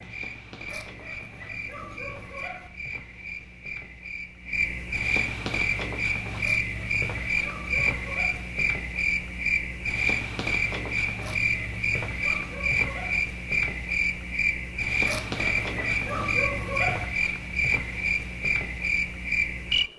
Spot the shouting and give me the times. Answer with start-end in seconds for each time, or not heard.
not heard.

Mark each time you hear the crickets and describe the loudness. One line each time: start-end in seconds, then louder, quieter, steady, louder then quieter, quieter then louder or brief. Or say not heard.
0.0-19.9 louder.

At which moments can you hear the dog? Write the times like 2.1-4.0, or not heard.
0.7-2.7, 6.4-8.4, 11.2-13.2, 15.1-17.1.